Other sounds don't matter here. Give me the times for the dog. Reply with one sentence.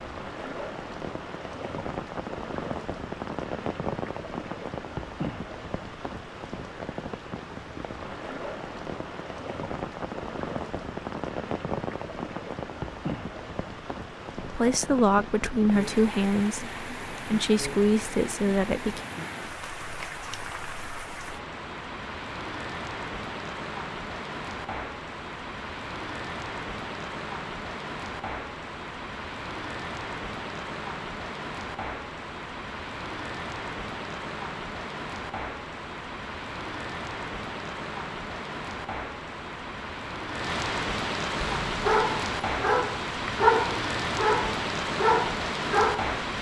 You can hear the dog from 41.6 to 46.1 s.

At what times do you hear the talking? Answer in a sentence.
The talking can be heard from 14.4 to 19.0 s.